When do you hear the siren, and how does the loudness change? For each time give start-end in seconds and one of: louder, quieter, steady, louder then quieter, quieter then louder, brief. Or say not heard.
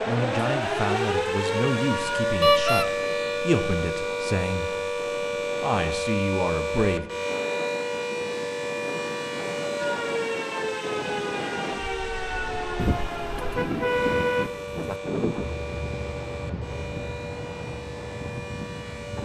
0.0-19.2 quieter.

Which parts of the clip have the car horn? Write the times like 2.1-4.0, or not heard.
2.4-2.9, 12.8-14.9.